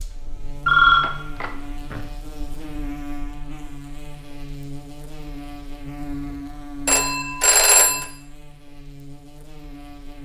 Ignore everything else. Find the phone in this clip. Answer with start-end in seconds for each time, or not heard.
0.7-2.0, 6.8-8.1.